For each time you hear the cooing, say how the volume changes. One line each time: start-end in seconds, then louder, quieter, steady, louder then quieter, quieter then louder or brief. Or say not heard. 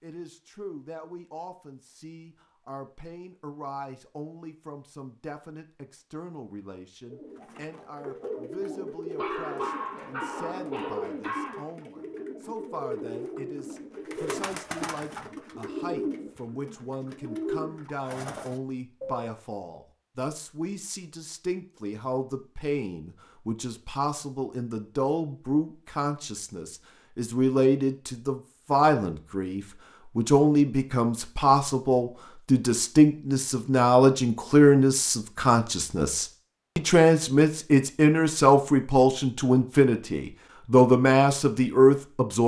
7.0-19.3 steady.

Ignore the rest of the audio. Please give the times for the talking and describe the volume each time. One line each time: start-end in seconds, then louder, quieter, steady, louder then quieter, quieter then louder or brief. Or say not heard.
0.0-42.4 louder.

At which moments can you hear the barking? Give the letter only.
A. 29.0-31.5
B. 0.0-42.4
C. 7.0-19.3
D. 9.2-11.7
D.